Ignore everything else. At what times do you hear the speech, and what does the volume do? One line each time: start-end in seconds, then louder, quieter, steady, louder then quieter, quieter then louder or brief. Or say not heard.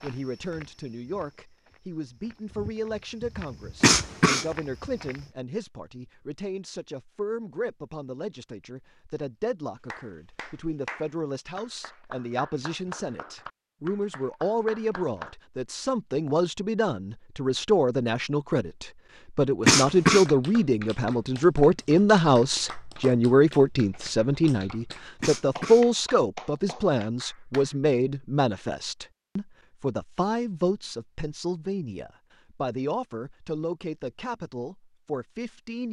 0.0-35.8 louder then quieter.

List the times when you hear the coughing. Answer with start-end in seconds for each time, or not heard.
3.8-4.5, 19.6-20.2, 25.2-25.9.